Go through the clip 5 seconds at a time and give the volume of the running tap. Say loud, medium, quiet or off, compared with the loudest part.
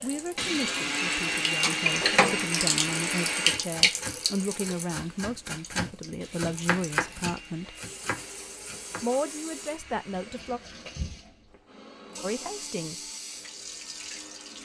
loud, quiet, quiet.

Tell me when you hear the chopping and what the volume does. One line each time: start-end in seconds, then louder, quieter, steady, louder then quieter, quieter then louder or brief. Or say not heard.
3.5-9.2 louder then quieter.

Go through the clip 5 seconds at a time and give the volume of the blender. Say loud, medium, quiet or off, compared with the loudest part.
loud, quiet, quiet.